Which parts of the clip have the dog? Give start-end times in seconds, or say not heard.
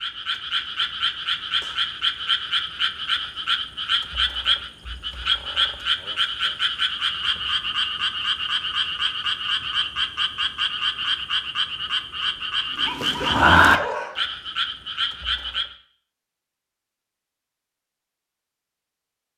12.8-14.2.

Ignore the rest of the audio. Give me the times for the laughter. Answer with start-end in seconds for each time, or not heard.
not heard.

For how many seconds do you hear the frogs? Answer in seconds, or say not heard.
16 s.